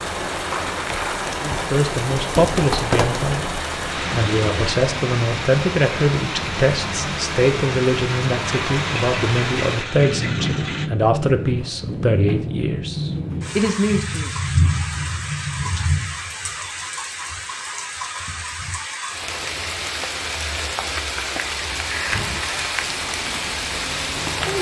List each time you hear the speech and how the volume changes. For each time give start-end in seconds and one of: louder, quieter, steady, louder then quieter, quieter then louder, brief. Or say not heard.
1.4-14.3 steady.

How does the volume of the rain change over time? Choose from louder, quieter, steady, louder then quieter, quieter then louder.
steady.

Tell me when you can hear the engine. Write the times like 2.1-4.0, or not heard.
0.0-4.8, 8.7-10.9, 22.1-24.5.